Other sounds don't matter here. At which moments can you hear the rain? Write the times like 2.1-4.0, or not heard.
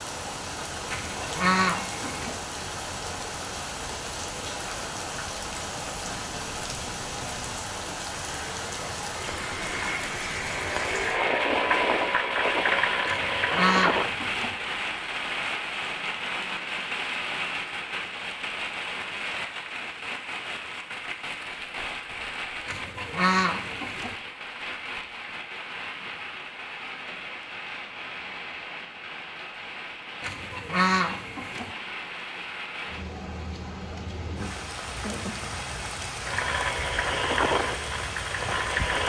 0.0-39.0.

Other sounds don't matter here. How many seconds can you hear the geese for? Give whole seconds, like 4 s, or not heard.
6 s.